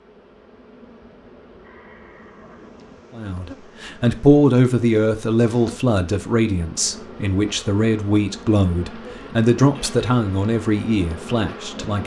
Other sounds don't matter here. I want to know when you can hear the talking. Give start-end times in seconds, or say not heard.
3.1-12.0.